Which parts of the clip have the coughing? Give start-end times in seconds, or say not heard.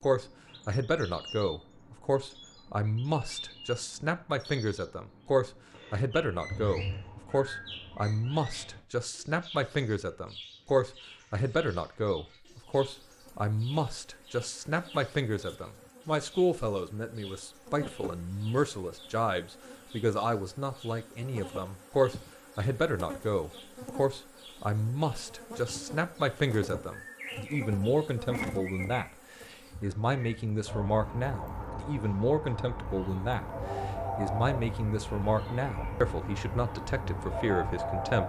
6.5-7.1.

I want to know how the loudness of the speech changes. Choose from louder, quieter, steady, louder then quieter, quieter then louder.
steady.